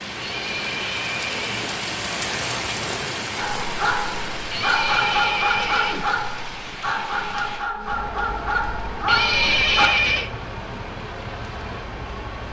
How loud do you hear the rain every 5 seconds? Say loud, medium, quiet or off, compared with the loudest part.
loud, medium, medium.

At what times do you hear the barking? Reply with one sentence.
The barking can be heard from 3.4 to 9.9 s.